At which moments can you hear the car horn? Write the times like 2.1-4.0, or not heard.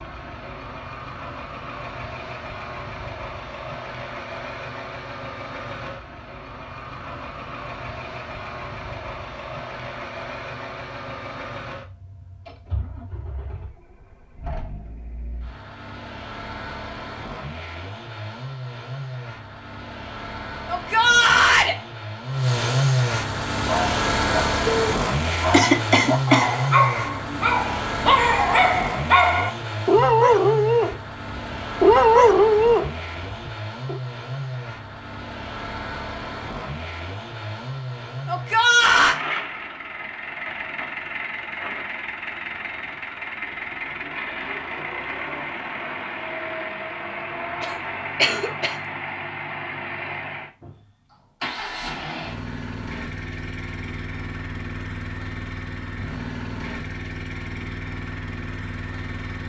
not heard.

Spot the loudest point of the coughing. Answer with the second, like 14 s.
26 s.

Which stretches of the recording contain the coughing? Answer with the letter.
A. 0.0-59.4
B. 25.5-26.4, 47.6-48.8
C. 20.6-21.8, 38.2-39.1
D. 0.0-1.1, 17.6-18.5
B.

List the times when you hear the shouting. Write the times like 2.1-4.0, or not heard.
20.6-21.8, 38.2-39.1.